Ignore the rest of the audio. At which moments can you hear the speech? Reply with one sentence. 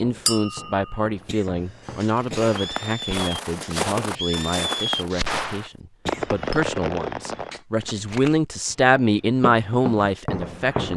The speech can be heard from 0.0 to 10.9 s.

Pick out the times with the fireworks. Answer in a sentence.
The fireworks can be heard from 1.8 to 7.6 s.